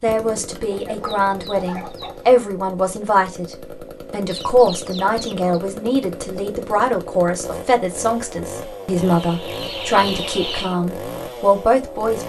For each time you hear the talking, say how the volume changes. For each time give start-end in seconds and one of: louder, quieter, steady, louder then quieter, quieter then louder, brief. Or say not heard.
0.0-12.2 steady.